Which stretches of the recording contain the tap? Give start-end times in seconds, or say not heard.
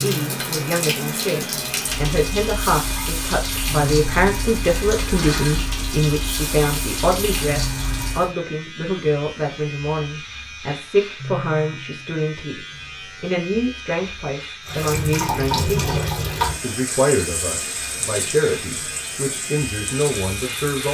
0.0-8.3, 14.7-20.8.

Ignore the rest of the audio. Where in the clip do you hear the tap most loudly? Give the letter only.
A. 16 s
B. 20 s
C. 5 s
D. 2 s
A.